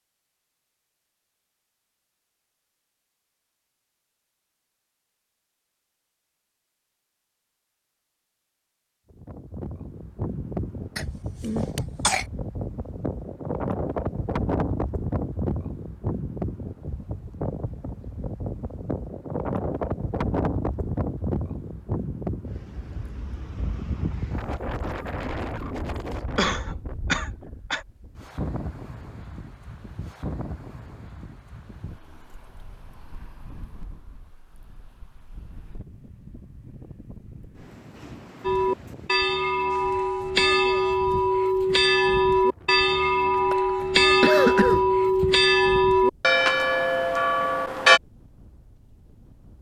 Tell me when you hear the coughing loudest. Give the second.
44 s.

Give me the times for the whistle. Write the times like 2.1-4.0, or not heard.
not heard.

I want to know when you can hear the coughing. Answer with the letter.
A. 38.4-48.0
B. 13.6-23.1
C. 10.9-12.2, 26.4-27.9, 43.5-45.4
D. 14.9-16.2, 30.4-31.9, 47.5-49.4
C.